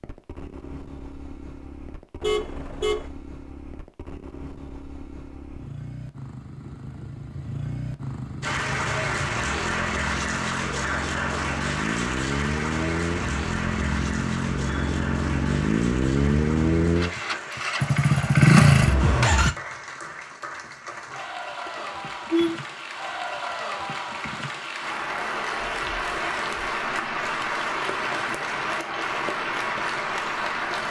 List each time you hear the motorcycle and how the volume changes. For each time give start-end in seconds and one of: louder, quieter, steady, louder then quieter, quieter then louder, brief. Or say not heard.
0.0-19.6 louder.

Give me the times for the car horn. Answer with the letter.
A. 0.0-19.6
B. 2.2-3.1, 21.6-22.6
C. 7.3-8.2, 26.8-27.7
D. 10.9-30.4
B.